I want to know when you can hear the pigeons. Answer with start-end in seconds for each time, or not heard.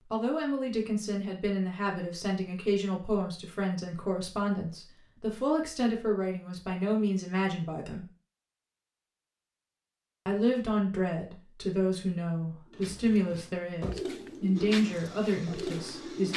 12.7-16.3.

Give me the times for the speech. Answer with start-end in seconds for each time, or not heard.
0.1-8.1, 10.2-16.3.